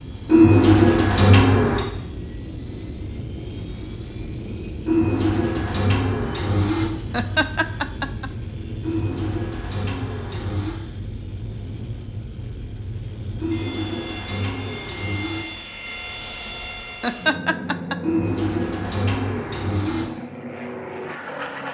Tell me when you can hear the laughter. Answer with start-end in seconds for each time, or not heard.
7.1-8.3, 17.0-18.0.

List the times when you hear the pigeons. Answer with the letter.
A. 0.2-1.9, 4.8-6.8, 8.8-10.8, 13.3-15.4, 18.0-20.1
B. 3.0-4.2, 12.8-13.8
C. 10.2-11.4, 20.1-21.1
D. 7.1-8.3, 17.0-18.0
A.